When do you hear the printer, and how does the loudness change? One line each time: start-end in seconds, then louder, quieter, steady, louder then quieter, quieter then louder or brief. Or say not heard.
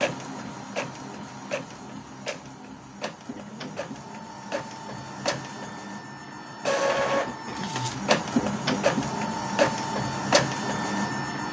0.0-11.4 louder.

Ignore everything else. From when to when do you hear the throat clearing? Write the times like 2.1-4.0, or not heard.
3.2-3.9, 7.1-8.1.